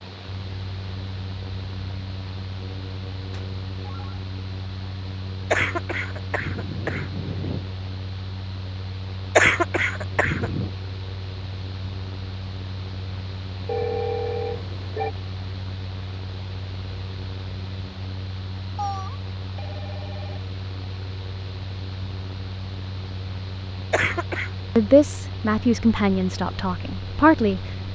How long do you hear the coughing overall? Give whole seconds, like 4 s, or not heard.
4 s.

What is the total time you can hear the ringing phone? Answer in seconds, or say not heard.
4 s.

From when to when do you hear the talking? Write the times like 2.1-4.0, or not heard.
24.8-27.6.